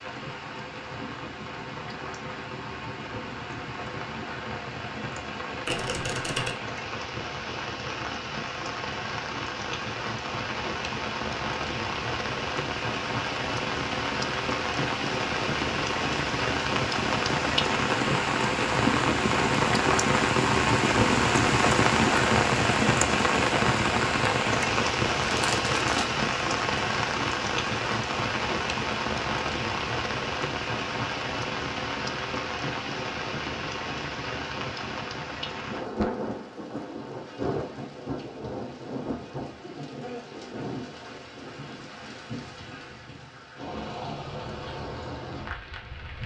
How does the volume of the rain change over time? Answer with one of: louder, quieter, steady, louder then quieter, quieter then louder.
louder then quieter.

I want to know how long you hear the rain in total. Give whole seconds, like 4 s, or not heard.
46 s.